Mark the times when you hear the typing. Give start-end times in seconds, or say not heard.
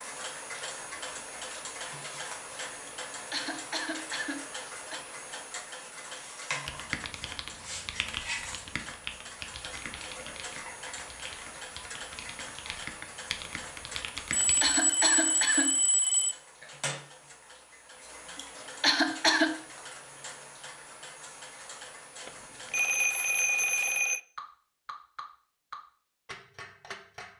6.7-14.8.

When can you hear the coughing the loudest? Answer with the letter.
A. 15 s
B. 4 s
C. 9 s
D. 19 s
D.